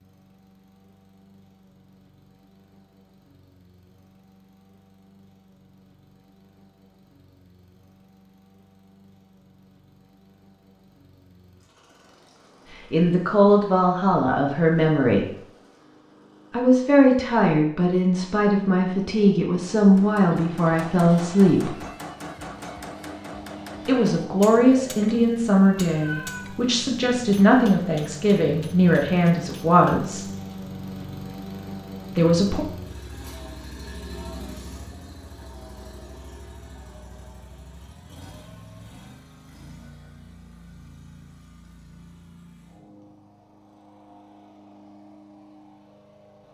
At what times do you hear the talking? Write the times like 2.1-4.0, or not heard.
12.9-15.2, 16.5-21.8, 23.9-30.2, 32.1-32.6.